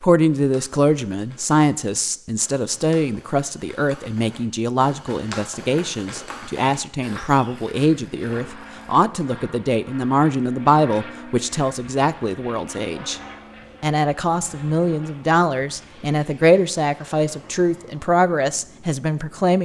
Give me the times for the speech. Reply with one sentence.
The speech can be heard from 0.0 to 13.2 s and from 13.8 to 19.6 s.